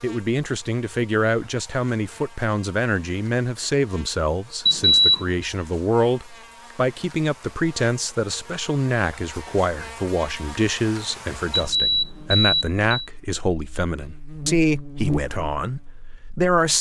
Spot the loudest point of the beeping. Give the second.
5 s.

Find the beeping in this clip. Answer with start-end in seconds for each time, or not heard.
4.7-5.3, 11.5-13.1.